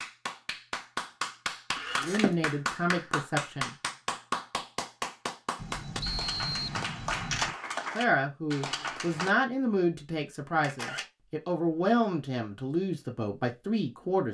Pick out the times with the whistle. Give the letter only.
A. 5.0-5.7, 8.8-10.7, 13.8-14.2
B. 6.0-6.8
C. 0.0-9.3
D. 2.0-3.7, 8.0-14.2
B.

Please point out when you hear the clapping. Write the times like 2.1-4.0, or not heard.
0.0-9.3.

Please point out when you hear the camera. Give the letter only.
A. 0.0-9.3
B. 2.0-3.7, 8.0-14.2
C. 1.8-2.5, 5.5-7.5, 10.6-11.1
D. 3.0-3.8
C.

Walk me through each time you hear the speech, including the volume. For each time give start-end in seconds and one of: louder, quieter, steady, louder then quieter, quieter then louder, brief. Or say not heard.
2.0-3.7 brief
8.0-14.2 steady.